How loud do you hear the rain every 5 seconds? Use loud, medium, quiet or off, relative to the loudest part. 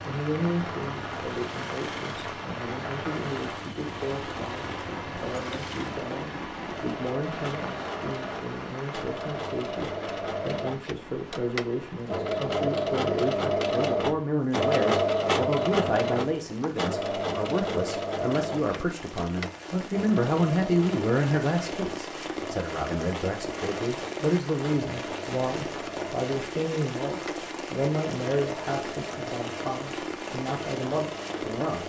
loud, loud, medium, medium, loud, loud, loud.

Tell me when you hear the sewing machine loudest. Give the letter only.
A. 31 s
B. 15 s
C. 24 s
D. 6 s
B.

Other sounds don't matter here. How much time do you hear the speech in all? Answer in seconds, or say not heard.
32 s.